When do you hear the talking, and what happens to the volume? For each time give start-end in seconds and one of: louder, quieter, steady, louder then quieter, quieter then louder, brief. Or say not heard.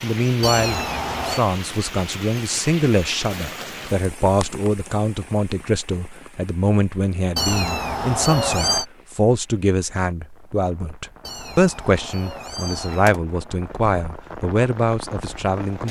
0.0-15.8 steady.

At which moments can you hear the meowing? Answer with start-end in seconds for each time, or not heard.
0.4-1.4, 7.3-8.8, 11.2-13.2.